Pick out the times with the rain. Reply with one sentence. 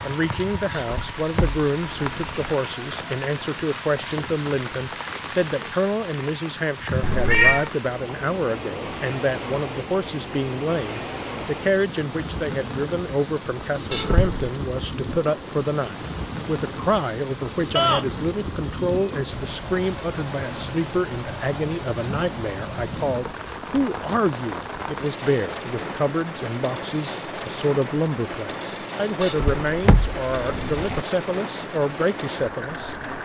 You can hear the rain from 0.0 to 33.2 s.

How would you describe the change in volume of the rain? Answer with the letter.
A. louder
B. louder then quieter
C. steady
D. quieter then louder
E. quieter
C.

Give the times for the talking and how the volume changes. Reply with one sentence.
The talking can be heard from 0.0 to 33.0 s, at a steady volume.